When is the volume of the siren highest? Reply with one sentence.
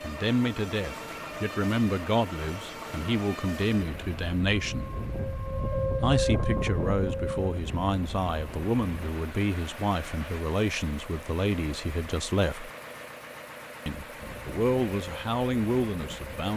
The loudest moment of the siren is at 6 seconds.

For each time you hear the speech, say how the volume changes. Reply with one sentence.
You can hear the speech from 0.0 to 4.8 s, at a steady volume; from 6.0 to 12.7 s, at a steady volume; and briefly from 13.8 to 16.5 s.